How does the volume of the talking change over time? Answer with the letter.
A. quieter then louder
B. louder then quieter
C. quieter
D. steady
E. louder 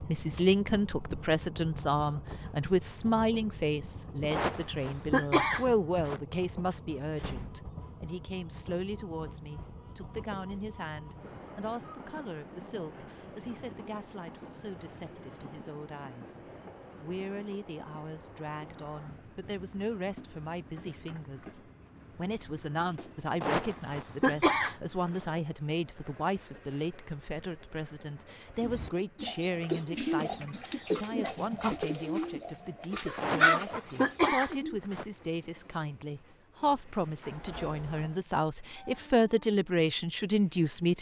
A.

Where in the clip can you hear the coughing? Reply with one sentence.
The coughing can be heard from 4.3 to 6.2 s, from 23.4 to 25.2 s and from 33.1 to 35.0 s.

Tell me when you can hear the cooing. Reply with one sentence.
You can hear the cooing from 28.6 to 34.8 s.